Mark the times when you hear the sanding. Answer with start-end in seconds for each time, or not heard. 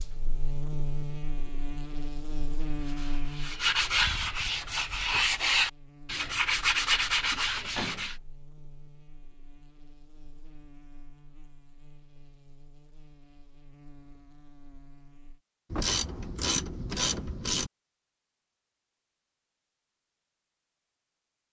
2.7-8.2.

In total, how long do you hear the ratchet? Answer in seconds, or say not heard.
2 s.